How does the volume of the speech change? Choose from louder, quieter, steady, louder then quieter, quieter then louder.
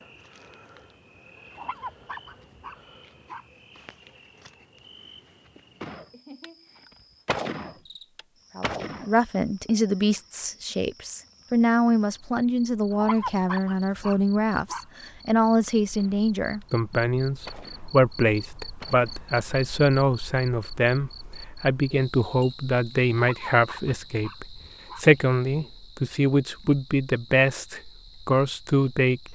steady.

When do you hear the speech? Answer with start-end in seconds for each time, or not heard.
8.6-29.2.